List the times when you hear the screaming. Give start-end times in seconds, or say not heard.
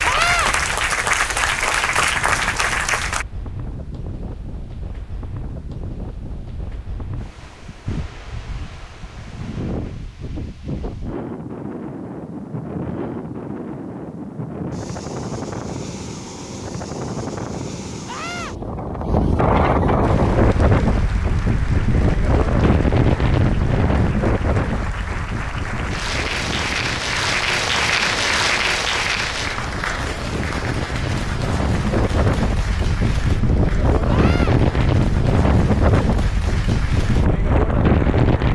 0.0-0.5, 18.1-18.6, 34.0-34.5.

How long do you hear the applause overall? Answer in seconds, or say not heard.
22 s.